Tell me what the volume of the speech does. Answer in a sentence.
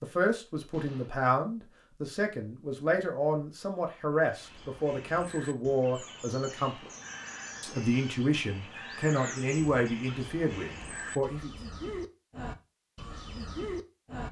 The volume of the speech stays about the same.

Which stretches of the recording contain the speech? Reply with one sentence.
You can hear the speech from 0.0 to 6.9 s and from 7.6 to 11.5 s.